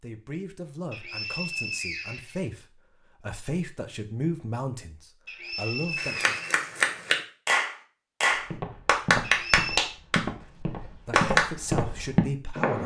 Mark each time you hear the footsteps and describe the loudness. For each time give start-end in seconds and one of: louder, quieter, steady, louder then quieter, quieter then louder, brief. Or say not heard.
8.3-12.8 louder.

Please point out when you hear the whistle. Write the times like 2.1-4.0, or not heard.
0.9-2.5, 5.2-6.7, 9.2-9.9.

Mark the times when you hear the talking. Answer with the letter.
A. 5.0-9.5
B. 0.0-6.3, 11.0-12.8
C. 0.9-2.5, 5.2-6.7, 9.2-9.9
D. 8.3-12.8
B.